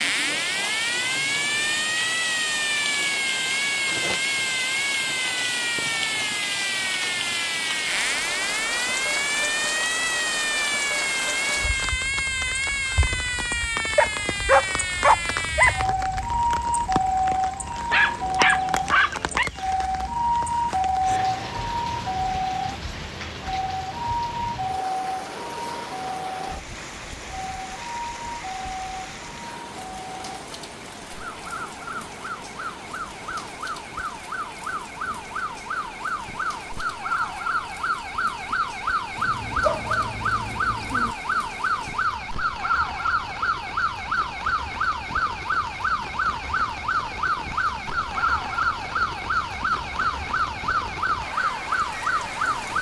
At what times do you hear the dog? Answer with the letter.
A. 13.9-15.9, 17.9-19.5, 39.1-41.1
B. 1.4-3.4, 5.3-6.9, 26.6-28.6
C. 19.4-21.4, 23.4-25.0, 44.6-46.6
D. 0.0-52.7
A.